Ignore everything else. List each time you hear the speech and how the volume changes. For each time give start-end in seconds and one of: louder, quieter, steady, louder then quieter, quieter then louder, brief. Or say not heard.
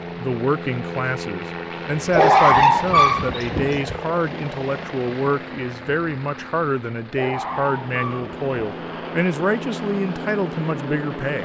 0.1-11.4 steady.